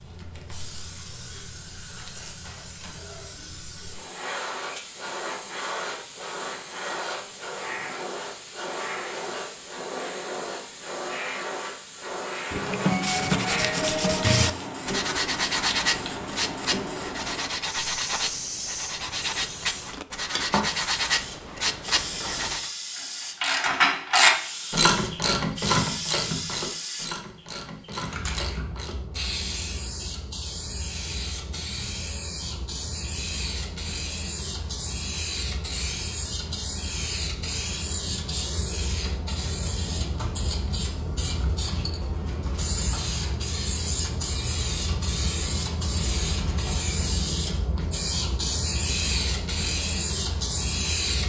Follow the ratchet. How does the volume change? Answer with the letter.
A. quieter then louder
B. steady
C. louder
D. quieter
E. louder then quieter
D.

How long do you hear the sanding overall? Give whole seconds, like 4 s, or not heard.
10 s.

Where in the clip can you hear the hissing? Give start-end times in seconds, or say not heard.
0.0-51.2.